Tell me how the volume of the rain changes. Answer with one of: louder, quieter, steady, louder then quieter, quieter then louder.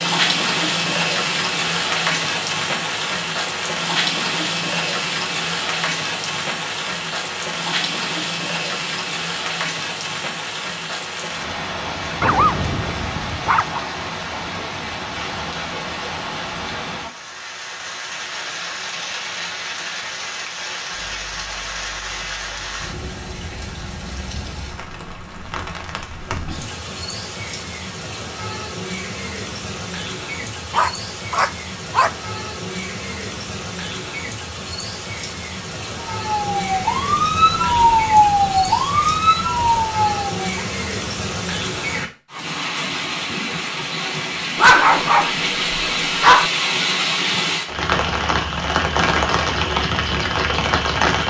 quieter then louder.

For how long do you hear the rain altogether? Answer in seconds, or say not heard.
51 s.